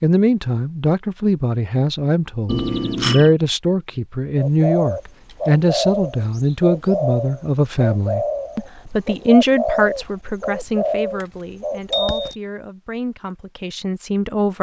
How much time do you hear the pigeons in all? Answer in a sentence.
The pigeons can be heard for 8 seconds in total.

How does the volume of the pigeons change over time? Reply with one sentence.
The volume of the pigeons stays about the same.